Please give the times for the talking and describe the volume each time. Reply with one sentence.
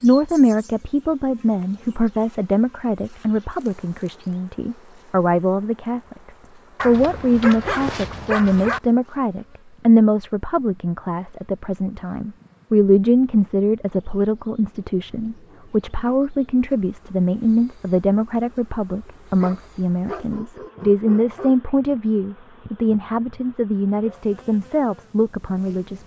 You can hear the talking from 0.0 to 26.0 s, at a steady volume.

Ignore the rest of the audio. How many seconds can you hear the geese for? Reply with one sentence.
You can't hear the geese here.